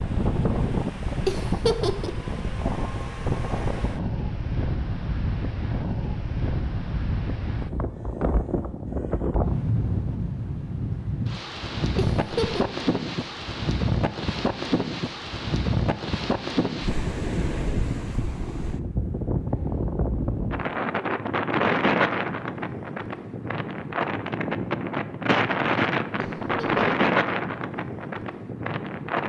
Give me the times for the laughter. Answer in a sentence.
The laughter can be heard from 1.2 to 2.2 s, from 11.9 to 12.7 s and from 26.1 to 26.9 s.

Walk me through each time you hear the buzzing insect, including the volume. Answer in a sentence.
You can't hear the buzzing insect here.